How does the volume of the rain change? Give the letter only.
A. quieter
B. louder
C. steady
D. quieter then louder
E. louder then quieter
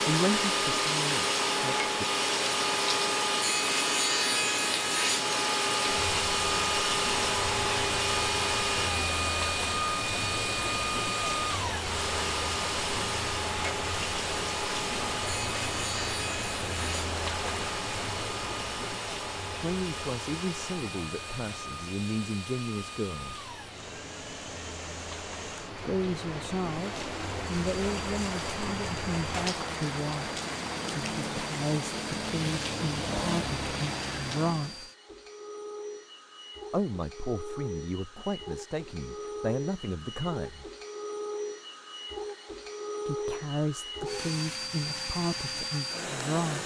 D.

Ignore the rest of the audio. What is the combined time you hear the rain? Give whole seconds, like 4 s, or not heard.
35 s.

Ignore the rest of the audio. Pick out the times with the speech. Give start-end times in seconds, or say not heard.
0.1-2.0, 19.6-23.5, 25.9-34.9, 36.7-40.7, 43.0-46.6.